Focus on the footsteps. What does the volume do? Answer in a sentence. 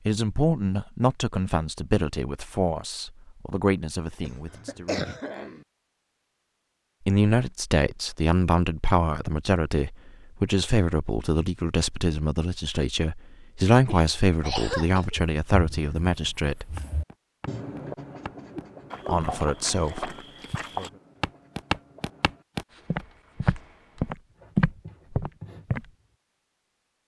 The volume of the footsteps goes up.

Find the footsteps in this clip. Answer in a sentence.
The footsteps can be heard from 16.8 to 25.9 s.